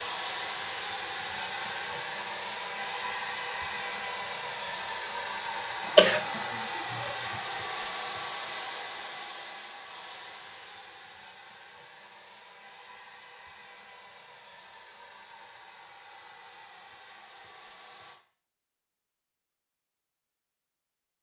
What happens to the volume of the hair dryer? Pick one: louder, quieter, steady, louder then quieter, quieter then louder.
quieter.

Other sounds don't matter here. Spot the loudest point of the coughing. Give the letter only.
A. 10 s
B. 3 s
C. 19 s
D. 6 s
D.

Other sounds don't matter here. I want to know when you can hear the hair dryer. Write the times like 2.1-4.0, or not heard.
0.0-18.2.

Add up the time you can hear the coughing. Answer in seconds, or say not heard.
2 s.